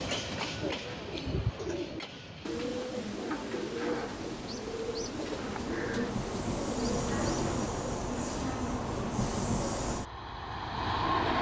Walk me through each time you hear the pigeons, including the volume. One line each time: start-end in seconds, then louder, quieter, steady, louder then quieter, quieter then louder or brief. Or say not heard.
0.6-7.7 steady.